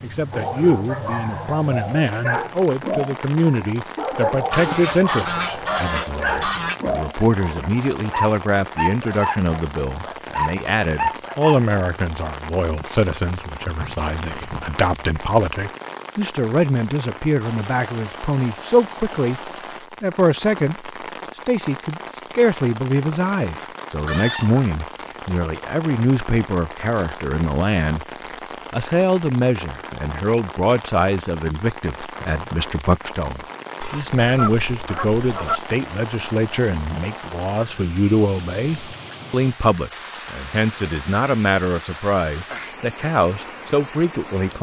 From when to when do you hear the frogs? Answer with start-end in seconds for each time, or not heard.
not heard.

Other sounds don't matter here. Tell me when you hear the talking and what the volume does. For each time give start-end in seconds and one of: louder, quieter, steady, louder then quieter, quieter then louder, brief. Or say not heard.
0.0-28.1 steady
28.7-44.5 steady.